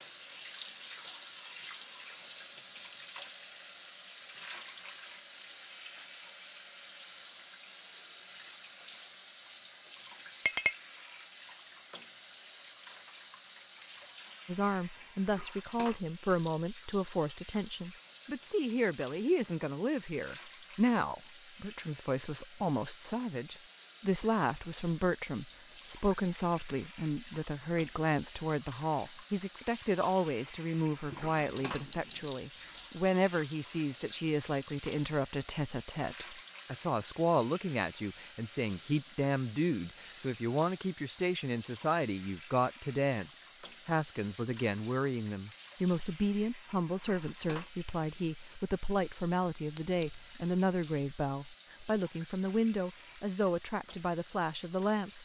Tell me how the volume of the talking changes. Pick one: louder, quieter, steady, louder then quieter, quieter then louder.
steady.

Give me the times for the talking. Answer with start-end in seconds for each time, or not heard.
14.4-55.1.